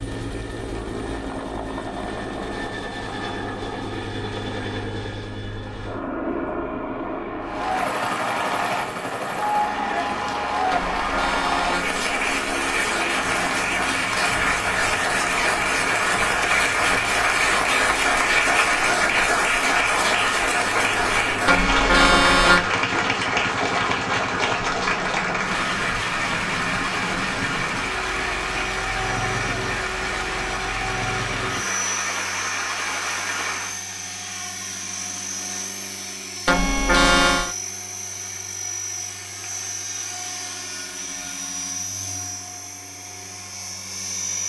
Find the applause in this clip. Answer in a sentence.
The applause can be heard from 7.4 to 33.8 s.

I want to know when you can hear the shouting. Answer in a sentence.
The shouting can't be heard in this clip.